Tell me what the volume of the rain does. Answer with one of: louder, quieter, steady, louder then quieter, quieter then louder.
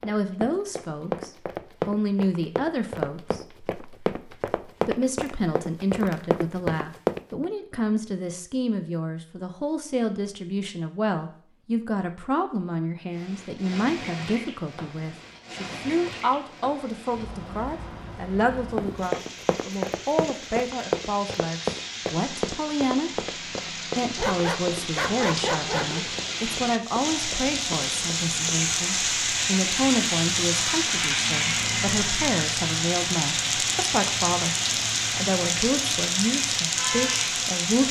louder.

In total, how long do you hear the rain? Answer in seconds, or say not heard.
25 s.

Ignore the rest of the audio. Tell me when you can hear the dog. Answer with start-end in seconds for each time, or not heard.
24.1-26.0.